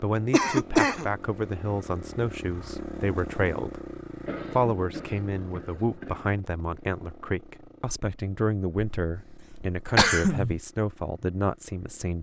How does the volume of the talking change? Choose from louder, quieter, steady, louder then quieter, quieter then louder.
steady.